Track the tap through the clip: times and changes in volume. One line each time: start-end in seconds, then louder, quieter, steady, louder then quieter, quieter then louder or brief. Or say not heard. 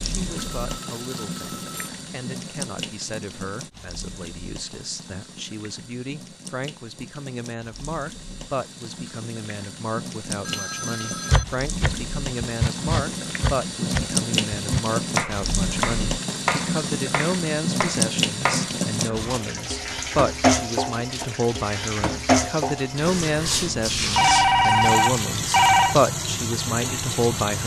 0.0-27.6 louder.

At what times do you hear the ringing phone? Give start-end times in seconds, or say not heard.
0.3-1.9, 10.4-11.4, 24.1-25.9.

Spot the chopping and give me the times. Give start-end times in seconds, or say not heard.
11.3-19.4.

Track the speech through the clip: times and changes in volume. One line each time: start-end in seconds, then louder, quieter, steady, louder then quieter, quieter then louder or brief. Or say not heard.
0.0-27.6 louder.